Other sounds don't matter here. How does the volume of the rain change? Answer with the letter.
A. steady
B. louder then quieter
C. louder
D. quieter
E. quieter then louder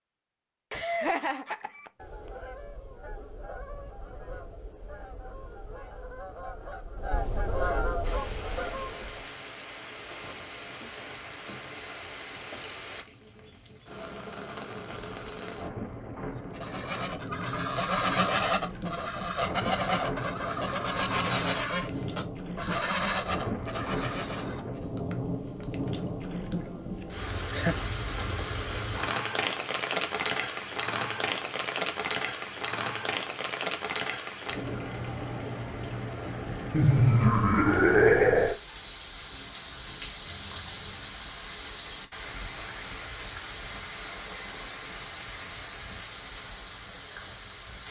B.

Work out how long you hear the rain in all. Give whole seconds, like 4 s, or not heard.
40 s.